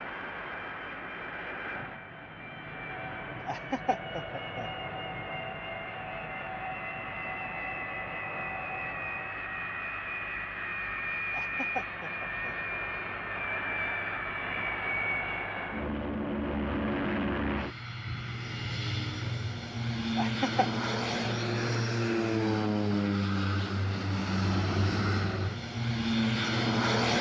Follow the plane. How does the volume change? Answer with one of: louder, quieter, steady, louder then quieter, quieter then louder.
louder.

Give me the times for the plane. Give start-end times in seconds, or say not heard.
0.0-27.1.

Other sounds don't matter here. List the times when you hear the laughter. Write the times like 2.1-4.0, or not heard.
3.5-4.7, 11.3-12.6, 20.1-20.7.